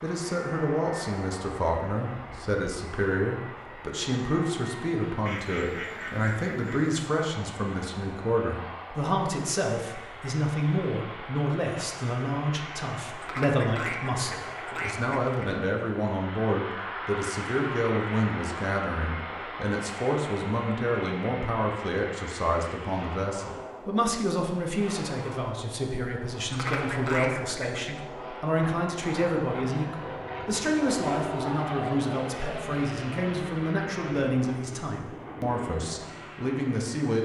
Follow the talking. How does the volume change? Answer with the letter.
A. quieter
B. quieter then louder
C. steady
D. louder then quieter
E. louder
C.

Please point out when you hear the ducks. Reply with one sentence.
The ducks can be heard from 5.2 to 7.0 s, from 13.2 to 15.6 s and from 26.5 to 28.0 s.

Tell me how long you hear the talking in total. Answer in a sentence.
You can hear the talking for 37 seconds altogether.